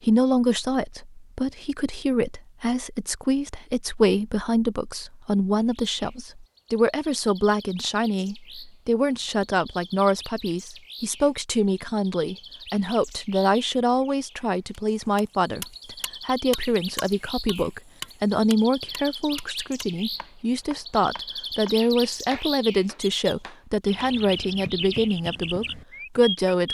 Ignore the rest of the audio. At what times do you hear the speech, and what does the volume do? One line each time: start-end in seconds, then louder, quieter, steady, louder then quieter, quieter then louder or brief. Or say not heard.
0.0-26.6 steady.